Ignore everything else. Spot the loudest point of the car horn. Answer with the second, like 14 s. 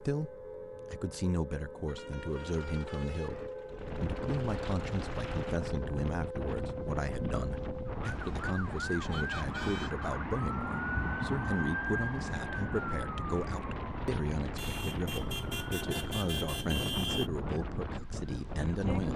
17 s.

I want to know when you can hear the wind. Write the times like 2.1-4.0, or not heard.
3.6-19.1.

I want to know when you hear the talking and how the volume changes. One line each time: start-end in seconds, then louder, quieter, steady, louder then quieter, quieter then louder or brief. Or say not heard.
0.0-19.1 steady.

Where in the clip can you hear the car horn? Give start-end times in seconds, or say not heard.
1.9-3.5, 8.1-10.1, 14.6-17.3.